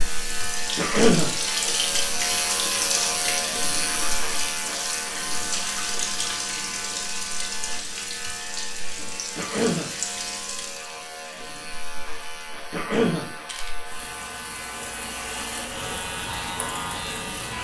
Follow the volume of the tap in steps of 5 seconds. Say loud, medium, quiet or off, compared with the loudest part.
loud, loud, medium, medium.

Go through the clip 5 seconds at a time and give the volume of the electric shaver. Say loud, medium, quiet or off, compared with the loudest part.
loud, medium, medium, loud.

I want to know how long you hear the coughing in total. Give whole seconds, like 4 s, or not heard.
2 s.